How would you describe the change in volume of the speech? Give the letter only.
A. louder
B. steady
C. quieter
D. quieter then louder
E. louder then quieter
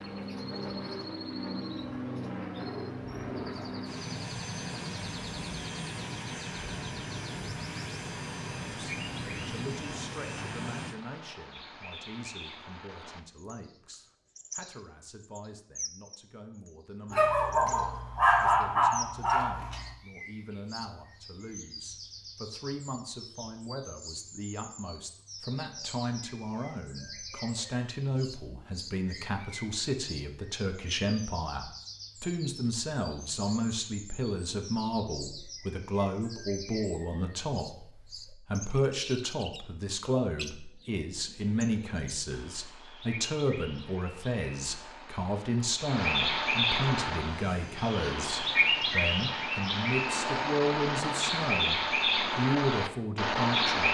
A.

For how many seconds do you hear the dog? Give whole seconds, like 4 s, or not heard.
3 s.